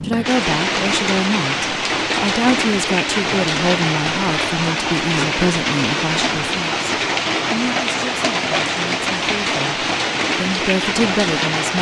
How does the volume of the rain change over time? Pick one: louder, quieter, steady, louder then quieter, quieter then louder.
steady.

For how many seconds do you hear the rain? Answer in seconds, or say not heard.
12 s.